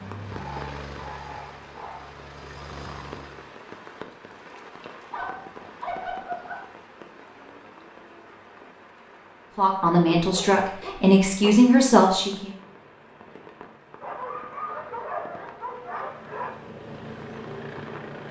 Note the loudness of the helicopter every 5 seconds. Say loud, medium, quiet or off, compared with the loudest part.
loud, off, quiet, loud.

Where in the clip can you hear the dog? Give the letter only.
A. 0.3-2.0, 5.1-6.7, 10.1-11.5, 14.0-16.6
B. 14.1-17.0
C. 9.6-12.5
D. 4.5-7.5
A.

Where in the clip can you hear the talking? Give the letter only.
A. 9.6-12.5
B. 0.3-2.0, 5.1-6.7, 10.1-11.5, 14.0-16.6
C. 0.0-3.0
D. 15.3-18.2
A.